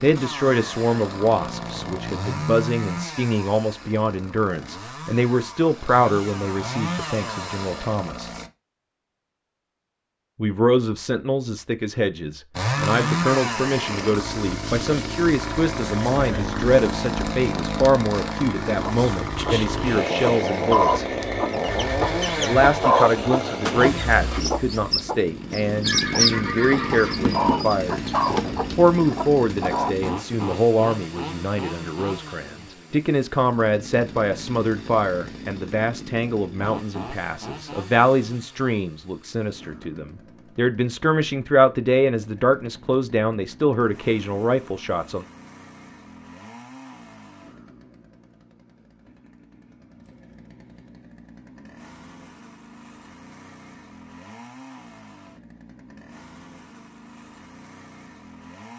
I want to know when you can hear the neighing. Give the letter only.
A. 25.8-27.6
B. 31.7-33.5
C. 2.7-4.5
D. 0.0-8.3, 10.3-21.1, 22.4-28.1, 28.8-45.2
A.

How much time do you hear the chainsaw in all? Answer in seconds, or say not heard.
55 s.